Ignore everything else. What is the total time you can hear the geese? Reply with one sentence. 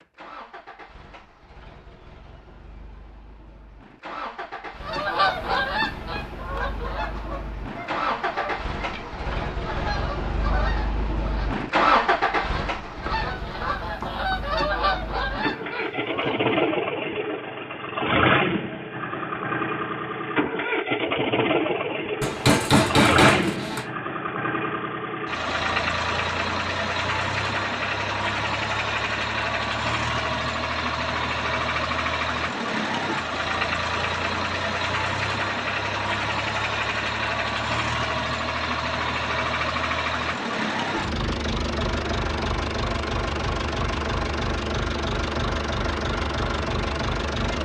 You can hear the geese for 12 seconds altogether.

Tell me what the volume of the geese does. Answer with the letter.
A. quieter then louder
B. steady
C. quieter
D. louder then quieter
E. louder
A.